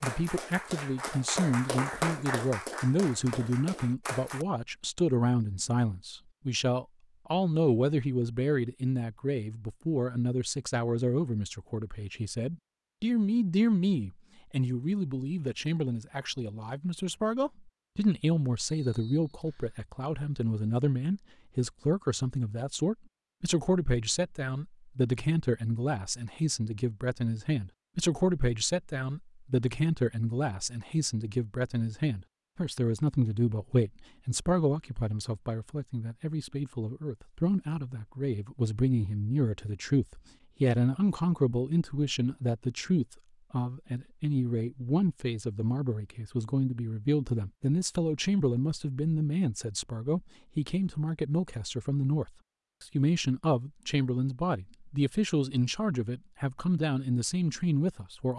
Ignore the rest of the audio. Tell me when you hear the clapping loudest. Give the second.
2 s.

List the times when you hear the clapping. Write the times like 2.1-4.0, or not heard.
0.0-4.5.